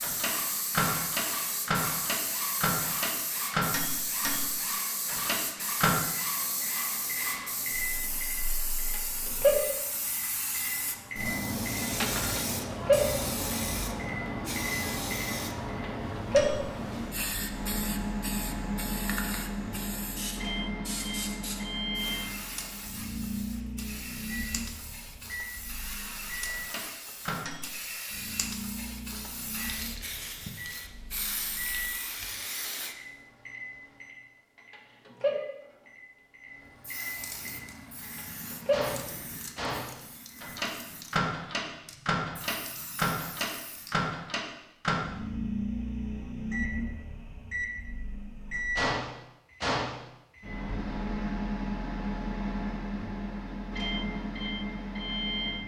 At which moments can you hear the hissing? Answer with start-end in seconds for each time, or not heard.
0.0-33.0, 36.6-44.0.